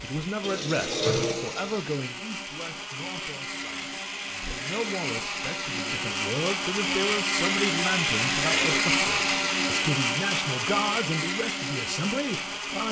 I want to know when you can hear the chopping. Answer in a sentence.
The chopping can't be heard in this clip.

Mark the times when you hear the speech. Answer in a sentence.
The speech can be heard from 0.0 to 12.8 s.